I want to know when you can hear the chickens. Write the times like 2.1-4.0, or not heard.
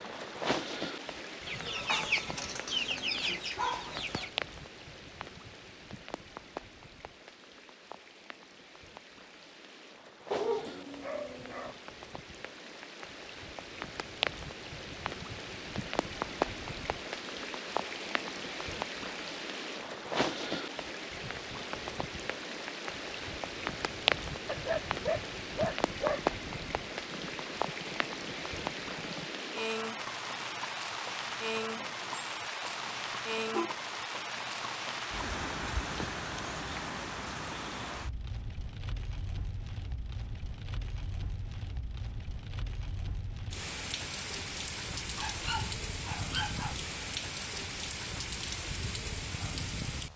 1.4-4.3.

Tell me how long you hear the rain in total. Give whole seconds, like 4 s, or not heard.
50 s.